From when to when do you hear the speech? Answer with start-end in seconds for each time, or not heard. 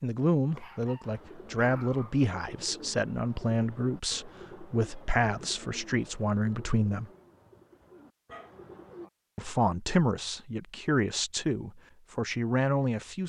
0.0-7.1, 9.3-13.2.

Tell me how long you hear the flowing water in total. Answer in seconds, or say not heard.
not heard.